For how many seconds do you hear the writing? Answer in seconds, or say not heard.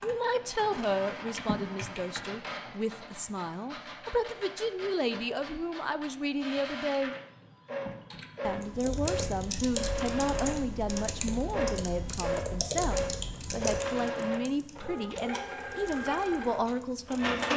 not heard.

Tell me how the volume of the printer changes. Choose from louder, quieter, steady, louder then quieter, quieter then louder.
louder.